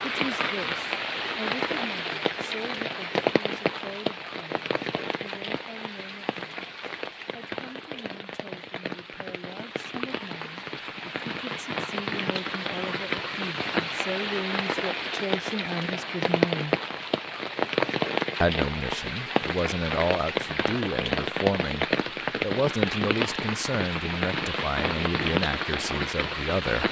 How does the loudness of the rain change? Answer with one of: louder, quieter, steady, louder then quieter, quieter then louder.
quieter then louder.